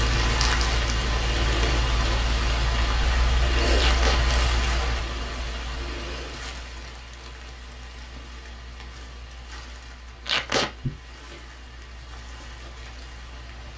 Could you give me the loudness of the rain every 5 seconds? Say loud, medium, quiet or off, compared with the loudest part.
loud, quiet, quiet.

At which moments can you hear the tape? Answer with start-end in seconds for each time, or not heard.
3.8-4.2, 10.2-10.7.